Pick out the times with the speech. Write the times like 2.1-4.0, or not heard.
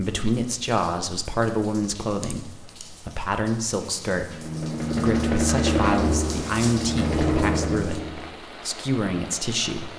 0.0-9.9.